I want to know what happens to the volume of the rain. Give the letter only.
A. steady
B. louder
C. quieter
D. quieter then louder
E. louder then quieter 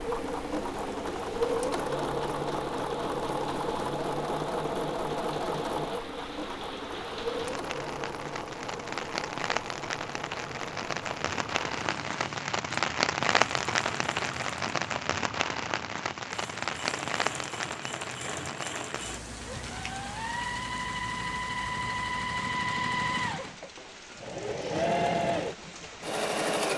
E.